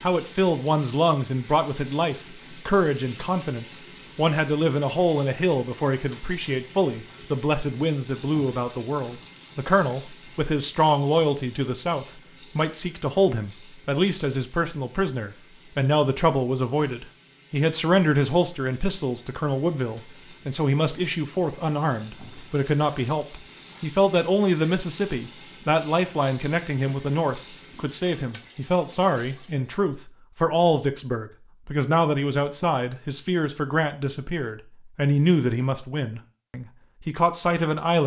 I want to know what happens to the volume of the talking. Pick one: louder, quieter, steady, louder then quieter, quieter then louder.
steady.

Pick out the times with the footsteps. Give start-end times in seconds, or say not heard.
not heard.